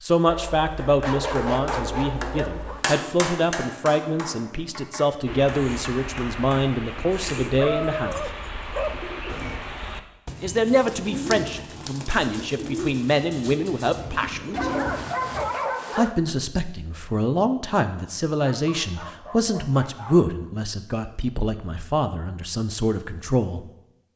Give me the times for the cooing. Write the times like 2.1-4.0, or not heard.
5.2-15.5.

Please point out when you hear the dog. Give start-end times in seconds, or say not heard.
0.2-2.8, 7.5-9.6, 14.5-16.1, 18.4-20.3.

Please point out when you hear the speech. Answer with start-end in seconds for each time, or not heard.
0.0-8.3, 10.4-14.6, 15.9-23.6.